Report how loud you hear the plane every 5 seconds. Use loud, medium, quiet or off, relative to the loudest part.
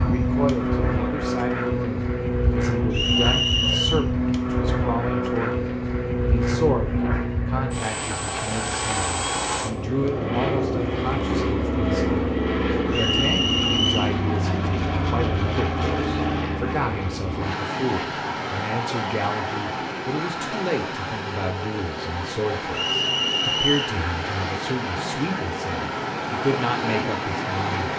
loud, loud, loud, loud, medium, loud.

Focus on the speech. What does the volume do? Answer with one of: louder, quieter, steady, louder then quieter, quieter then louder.
steady.